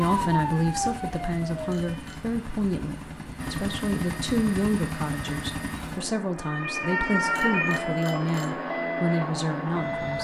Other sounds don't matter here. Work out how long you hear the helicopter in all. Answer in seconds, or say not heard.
10 s.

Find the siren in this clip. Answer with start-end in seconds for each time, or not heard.
0.0-2.1, 6.3-10.1.